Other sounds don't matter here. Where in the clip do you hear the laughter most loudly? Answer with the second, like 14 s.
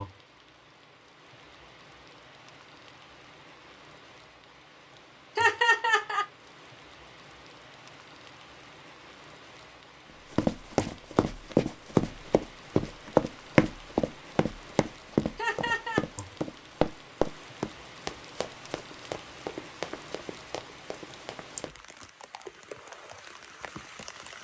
6 s.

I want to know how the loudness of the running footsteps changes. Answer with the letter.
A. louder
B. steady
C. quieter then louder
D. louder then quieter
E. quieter
E.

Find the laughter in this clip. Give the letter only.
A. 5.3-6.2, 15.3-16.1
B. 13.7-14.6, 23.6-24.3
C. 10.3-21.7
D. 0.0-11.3
A.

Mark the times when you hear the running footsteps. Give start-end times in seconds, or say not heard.
10.3-21.7.